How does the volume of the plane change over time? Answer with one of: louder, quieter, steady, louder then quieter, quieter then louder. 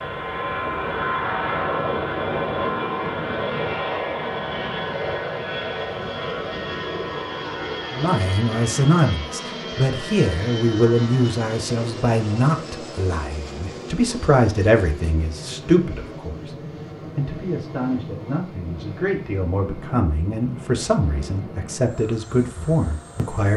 quieter.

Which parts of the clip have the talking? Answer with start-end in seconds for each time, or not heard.
7.9-23.5.